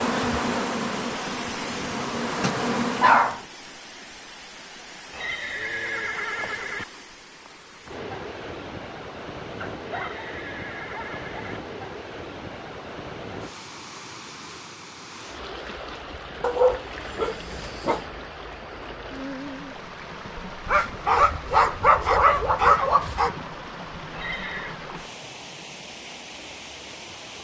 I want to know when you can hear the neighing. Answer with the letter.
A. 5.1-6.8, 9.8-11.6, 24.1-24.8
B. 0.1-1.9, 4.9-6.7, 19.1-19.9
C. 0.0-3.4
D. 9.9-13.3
A.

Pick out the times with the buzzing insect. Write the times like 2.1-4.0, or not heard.
0.0-3.4.